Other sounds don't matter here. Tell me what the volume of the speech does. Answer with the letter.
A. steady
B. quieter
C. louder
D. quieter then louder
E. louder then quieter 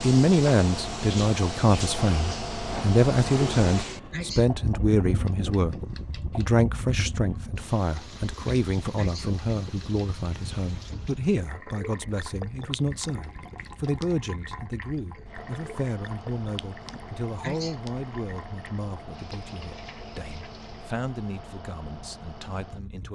B.